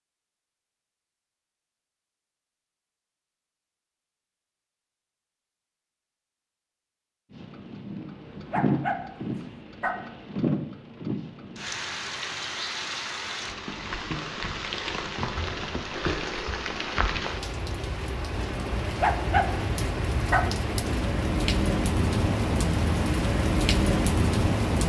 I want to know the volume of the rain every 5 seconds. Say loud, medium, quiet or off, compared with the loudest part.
off, medium, medium, medium, loud.